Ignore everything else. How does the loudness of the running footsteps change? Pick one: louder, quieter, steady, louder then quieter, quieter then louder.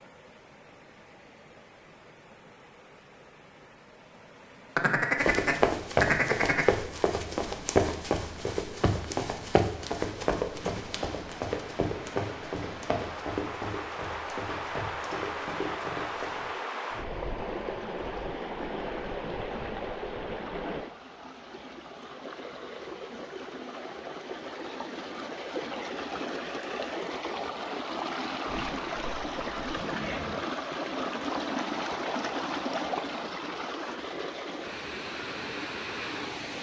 quieter.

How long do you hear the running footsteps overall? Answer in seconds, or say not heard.
11 s.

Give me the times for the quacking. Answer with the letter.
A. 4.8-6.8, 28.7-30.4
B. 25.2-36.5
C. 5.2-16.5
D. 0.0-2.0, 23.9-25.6
A.